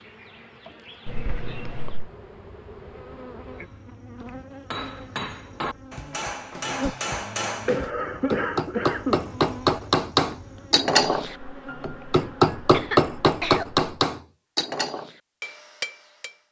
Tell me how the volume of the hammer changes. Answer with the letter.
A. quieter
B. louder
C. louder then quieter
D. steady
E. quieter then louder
C.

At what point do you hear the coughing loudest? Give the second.
8 s.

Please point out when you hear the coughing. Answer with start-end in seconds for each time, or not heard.
1.1-2.1, 7.7-9.3, 12.7-13.7.